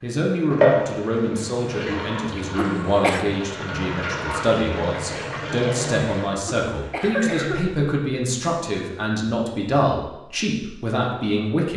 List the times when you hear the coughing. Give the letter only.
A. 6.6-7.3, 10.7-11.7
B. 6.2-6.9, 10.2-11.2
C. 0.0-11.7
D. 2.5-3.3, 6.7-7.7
D.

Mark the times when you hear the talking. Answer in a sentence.
You can hear the talking from 0.0 to 11.7 s.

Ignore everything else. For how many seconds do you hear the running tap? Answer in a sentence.
The running tap can be heard for 6 seconds in total.